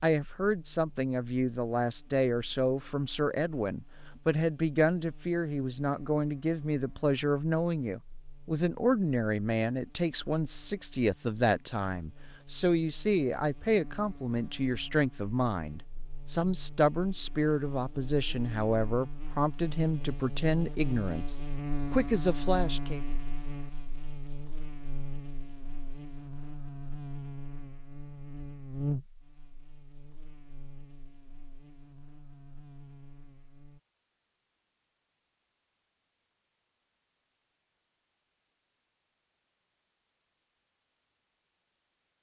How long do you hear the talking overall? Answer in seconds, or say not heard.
23 s.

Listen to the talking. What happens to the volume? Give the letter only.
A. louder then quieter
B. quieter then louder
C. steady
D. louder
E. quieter
C.